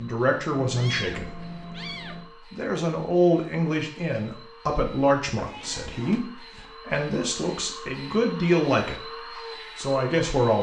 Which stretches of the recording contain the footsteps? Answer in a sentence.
You can't hear the footsteps here.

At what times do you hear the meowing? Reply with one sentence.
You can hear the meowing from 0.6 to 2.3 s and from 5.3 to 6.2 s.